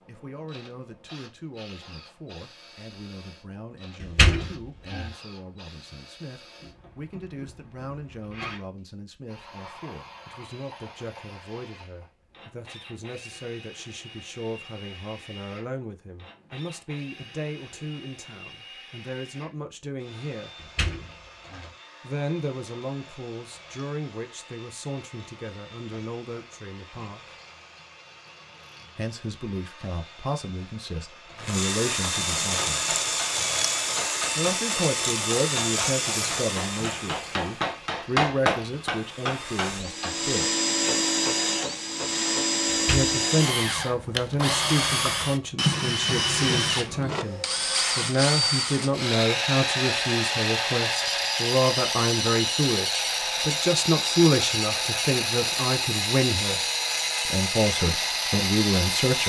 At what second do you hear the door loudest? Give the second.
4 s.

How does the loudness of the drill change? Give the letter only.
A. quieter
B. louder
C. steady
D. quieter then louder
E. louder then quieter
B.